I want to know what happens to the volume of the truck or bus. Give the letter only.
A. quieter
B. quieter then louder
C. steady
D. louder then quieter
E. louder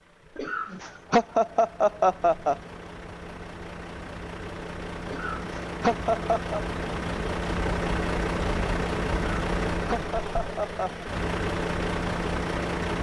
E.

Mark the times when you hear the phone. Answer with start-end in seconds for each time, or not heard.
not heard.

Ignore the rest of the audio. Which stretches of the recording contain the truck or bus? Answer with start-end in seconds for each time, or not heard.
0.0-12.9.